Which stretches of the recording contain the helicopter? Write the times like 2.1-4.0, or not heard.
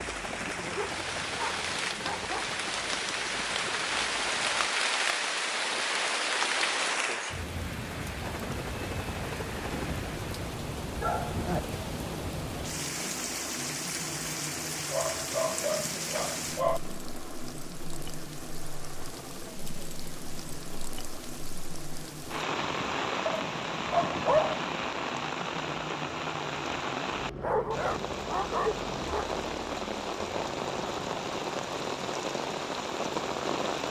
0.0-4.7, 8.2-33.8.